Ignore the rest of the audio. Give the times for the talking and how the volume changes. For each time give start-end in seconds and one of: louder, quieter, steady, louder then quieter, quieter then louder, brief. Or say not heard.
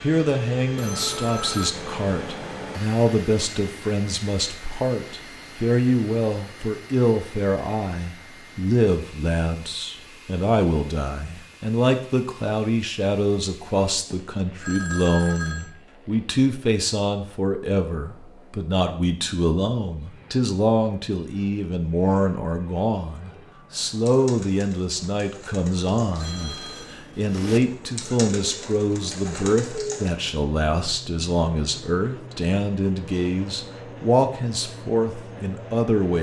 0.0-36.1 steady.